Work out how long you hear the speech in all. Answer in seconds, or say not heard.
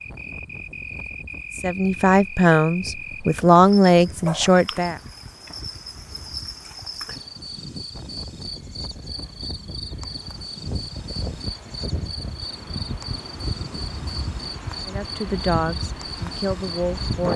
6 s.